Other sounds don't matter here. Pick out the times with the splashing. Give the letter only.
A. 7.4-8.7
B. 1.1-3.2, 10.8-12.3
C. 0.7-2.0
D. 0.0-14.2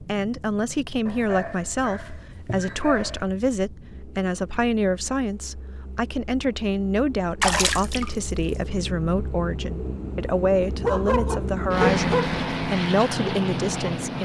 A.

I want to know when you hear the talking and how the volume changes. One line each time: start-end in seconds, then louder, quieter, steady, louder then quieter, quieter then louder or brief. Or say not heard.
0.0-14.2 steady.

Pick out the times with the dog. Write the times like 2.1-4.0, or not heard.
1.1-3.2, 10.8-12.3.